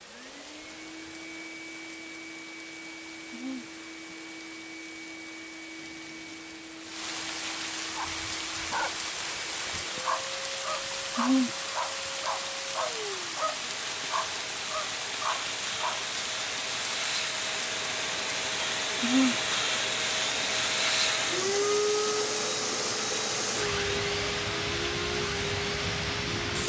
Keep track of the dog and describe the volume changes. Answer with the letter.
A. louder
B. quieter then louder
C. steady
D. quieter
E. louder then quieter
C.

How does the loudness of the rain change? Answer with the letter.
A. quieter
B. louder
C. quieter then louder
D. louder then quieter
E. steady
B.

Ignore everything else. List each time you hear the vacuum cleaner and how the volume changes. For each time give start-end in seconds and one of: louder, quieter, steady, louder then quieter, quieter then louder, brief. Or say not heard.
0.0-26.6 louder.